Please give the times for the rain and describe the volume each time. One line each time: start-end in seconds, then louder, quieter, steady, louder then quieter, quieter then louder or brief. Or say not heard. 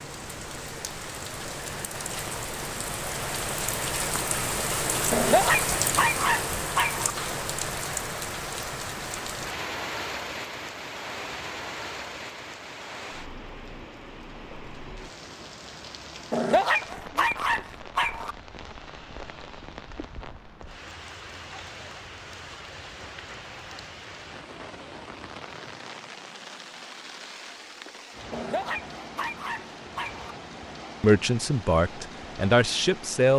0.0-33.3 quieter.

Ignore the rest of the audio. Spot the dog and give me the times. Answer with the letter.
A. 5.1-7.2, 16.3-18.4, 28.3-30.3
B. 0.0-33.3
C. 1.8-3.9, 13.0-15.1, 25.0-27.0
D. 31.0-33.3
A.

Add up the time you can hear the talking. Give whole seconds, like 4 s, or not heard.
2 s.